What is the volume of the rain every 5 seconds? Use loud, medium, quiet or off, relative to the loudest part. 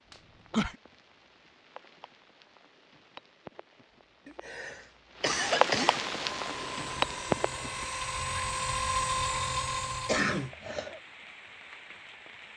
quiet, loud, quiet.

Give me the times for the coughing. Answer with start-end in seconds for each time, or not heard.
0.1-0.8, 4.2-6.0, 10.1-11.0.